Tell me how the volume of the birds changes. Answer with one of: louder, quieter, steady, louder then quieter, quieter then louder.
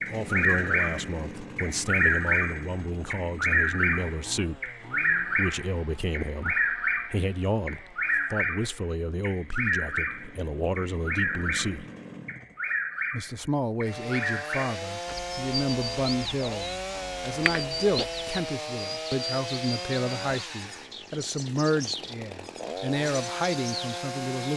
quieter.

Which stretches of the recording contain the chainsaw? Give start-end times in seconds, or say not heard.
0.0-24.5.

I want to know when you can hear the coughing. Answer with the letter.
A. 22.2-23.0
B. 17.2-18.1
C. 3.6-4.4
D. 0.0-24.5
B.